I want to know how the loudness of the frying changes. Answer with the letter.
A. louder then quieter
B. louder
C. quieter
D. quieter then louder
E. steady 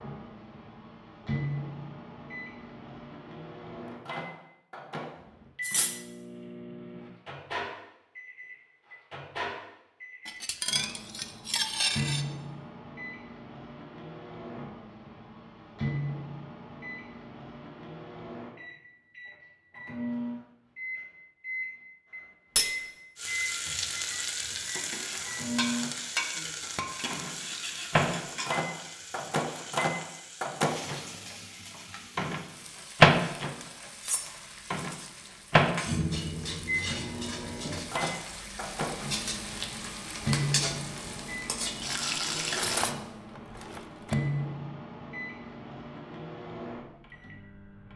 D.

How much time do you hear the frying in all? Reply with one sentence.
The frying can be heard for 20 seconds in total.